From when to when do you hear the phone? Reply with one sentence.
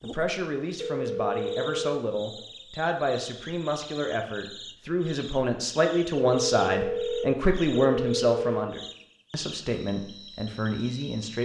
You can hear the phone from 0.8 to 2.5 s and from 6.2 to 8.7 s.